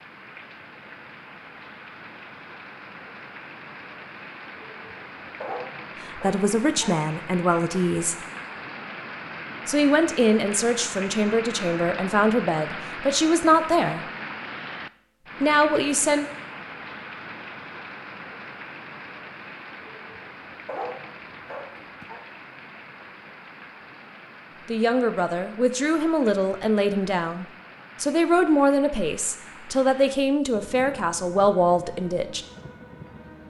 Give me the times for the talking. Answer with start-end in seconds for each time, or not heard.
6.2-8.2, 9.7-14.1, 15.4-16.2, 24.6-32.5.